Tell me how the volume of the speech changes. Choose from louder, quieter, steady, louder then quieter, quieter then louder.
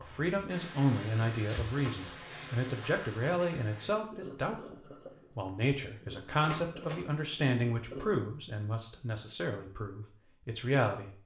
steady.